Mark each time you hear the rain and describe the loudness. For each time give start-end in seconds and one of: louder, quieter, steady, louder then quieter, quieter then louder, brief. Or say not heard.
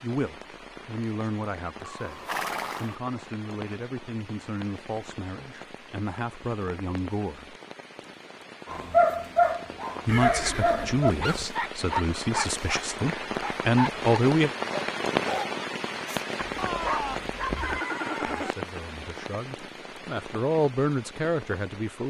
0.0-22.0 louder then quieter.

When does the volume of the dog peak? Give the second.
9 s.